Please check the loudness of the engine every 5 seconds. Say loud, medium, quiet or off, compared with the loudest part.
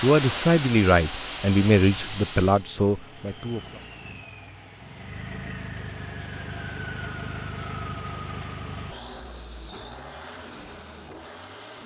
medium, loud, medium.